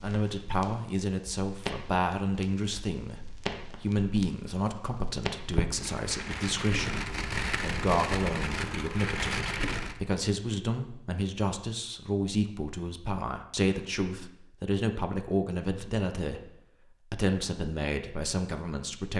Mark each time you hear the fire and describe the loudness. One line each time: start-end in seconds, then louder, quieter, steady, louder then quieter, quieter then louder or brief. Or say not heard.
0.0-10.0 louder.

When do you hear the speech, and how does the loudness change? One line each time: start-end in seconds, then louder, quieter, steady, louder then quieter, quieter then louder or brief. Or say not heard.
0.0-16.5 steady
17.1-19.1 brief.